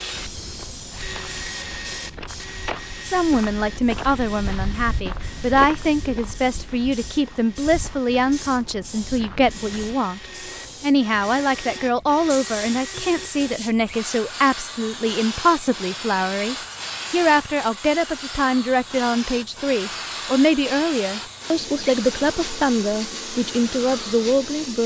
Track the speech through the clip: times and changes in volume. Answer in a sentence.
The speech can be heard from 3.0 to 24.8 s, at a steady volume.